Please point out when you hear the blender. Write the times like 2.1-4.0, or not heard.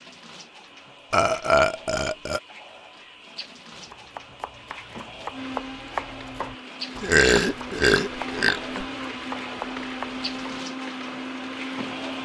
5.3-12.1.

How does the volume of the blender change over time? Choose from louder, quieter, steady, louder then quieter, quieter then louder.
louder.